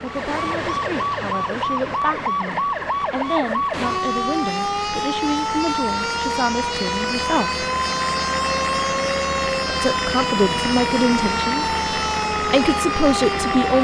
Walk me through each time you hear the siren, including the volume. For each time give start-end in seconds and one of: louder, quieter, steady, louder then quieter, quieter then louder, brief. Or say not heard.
0.0-13.7 steady.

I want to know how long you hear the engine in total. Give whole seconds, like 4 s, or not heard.
14 s.